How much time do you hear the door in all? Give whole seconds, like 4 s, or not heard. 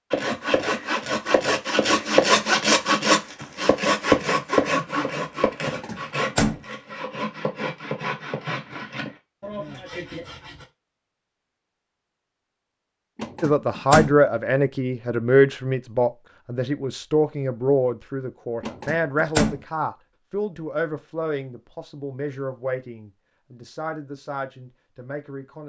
3 s.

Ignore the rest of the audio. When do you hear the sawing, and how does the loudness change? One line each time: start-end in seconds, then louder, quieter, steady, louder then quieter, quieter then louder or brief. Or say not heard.
0.1-10.7 quieter.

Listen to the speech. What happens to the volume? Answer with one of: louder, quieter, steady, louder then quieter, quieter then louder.
quieter.